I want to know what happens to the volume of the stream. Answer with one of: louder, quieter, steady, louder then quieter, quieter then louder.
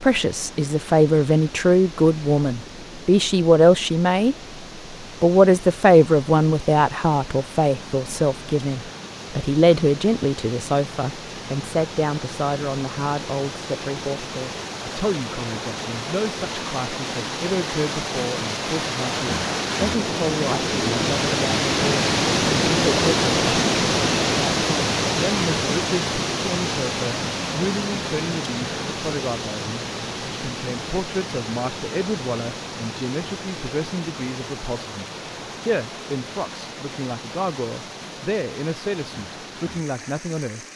louder then quieter.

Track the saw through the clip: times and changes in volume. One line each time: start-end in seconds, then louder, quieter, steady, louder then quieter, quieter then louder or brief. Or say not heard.
not heard.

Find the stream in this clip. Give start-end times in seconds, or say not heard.
0.0-40.7.